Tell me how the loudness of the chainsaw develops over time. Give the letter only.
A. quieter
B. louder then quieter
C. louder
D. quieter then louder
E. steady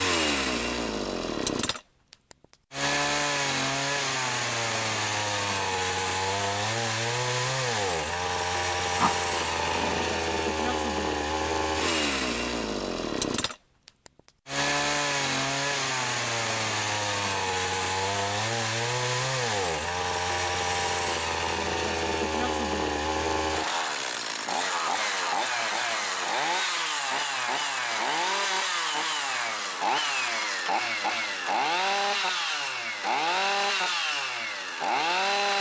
E.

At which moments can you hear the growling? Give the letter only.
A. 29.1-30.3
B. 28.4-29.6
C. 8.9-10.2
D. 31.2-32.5
C.